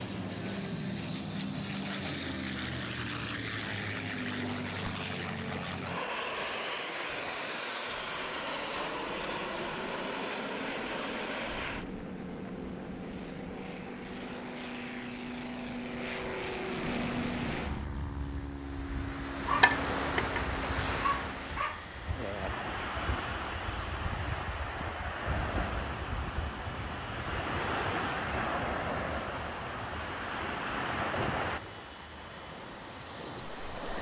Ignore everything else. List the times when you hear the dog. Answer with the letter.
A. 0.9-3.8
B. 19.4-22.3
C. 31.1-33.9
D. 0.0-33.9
B.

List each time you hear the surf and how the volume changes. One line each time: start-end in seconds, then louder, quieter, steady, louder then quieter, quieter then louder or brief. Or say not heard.
0.0-33.9 louder.